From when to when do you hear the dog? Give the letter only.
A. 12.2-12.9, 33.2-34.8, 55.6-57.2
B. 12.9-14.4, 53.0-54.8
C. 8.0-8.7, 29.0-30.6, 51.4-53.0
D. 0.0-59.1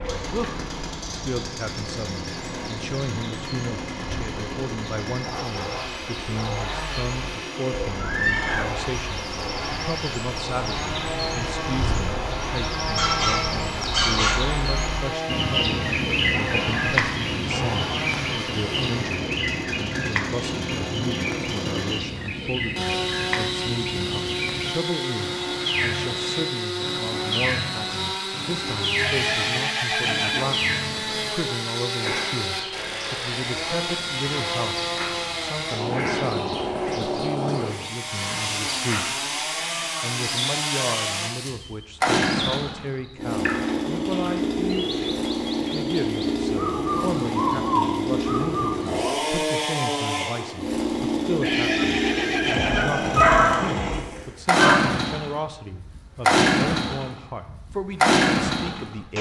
B.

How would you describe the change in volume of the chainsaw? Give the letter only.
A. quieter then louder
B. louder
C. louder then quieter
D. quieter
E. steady
B.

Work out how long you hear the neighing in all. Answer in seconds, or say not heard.
4 s.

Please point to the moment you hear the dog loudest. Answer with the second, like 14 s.
53 s.